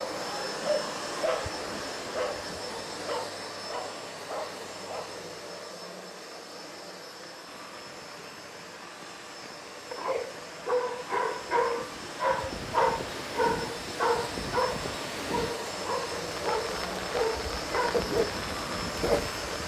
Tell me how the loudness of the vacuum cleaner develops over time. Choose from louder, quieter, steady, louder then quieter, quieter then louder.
quieter then louder.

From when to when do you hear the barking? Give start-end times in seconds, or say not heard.
0.0-5.2, 9.9-19.4.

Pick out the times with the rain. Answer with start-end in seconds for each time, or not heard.
7.5-19.6.